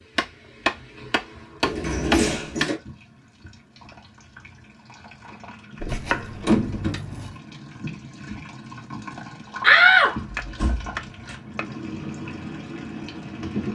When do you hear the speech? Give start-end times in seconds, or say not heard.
not heard.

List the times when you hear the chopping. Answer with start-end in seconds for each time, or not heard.
0.1-2.7, 5.9-7.3, 10.3-11.8.